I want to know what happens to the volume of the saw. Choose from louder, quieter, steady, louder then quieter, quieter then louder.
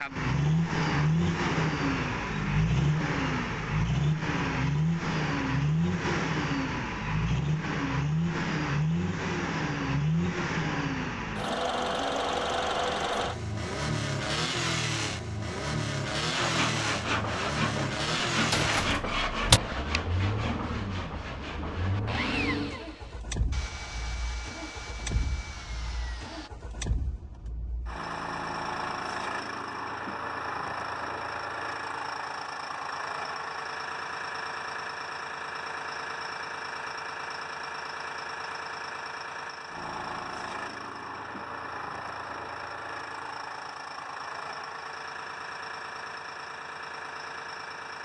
quieter.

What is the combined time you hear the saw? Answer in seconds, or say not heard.
10 s.